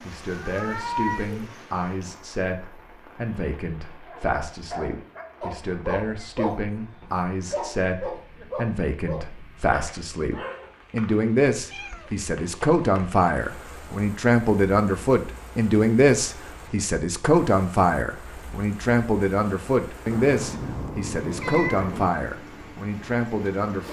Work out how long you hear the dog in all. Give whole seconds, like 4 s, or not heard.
7 s.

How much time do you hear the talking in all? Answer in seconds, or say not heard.
24 s.